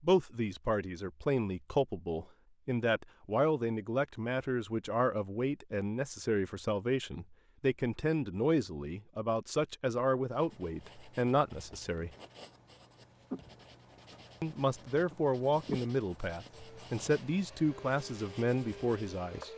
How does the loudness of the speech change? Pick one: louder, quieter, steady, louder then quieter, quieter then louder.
steady.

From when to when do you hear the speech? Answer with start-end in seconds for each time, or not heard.
0.0-12.1, 14.4-19.5.